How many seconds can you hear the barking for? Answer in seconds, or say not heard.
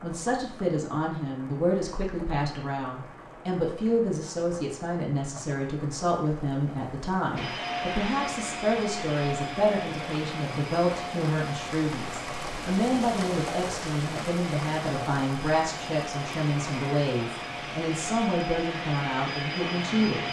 not heard.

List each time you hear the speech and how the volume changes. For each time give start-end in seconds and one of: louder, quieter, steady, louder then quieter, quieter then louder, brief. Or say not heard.
0.0-20.2 steady.